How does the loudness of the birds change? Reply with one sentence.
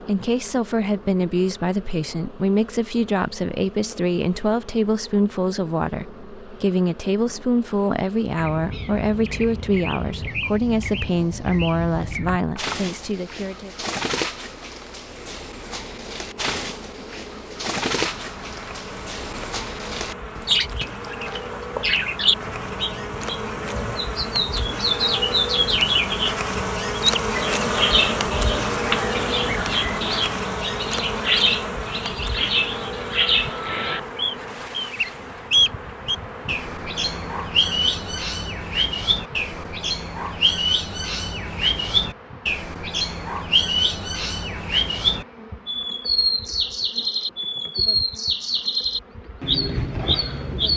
The volume of the birds goes up.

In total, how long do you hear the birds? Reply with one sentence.
You can hear the birds for 42 seconds altogether.